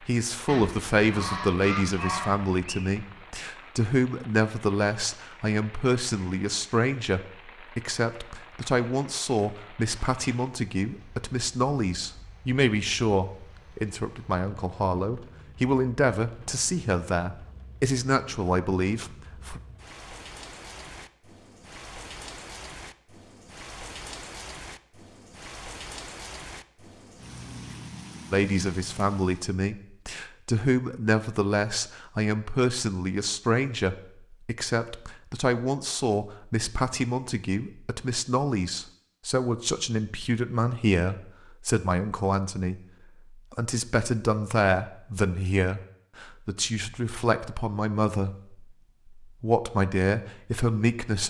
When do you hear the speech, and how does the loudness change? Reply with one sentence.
You can hear the speech from 0.1 to 19.6 s, at a steady volume; and from 28.3 to 51.2 s, at a steady volume.